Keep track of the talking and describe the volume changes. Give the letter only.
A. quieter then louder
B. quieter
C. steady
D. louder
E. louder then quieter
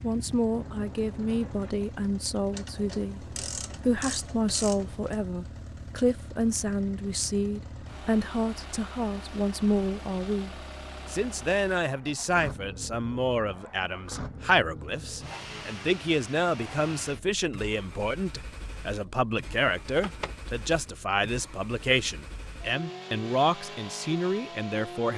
C.